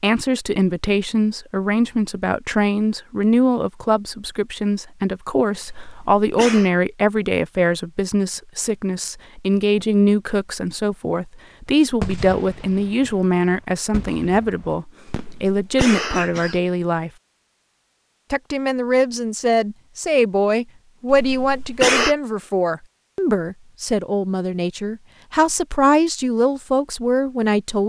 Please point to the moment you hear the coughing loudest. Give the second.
22 s.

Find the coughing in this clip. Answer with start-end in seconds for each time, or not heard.
5.7-6.7, 15.1-16.6, 21.1-22.1.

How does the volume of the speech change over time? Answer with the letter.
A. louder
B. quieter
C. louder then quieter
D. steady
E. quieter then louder
D.